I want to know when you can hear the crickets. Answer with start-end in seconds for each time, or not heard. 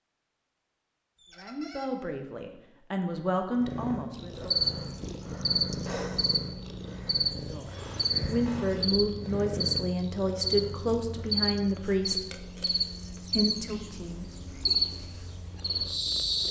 4.3-16.4.